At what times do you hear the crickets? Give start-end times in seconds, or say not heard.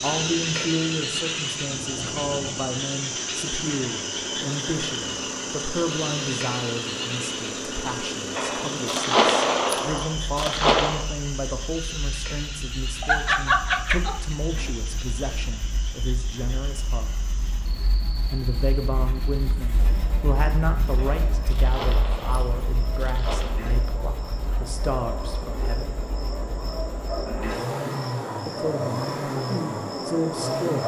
0.0-30.8.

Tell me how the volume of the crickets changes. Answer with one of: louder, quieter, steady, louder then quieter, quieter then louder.
quieter then louder.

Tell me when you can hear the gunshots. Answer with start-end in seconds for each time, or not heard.
8.3-11.0, 20.9-23.6.